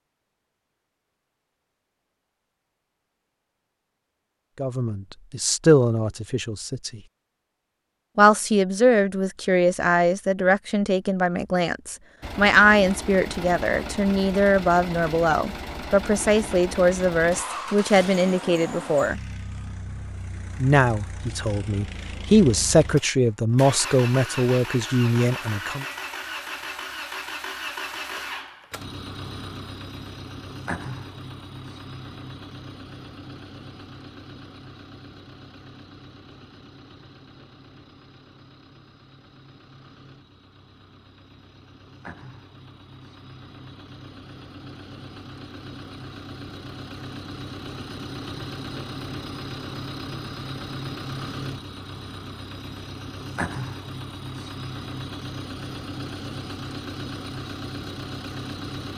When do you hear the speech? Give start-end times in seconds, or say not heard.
4.6-7.0, 8.2-19.2, 20.6-25.9.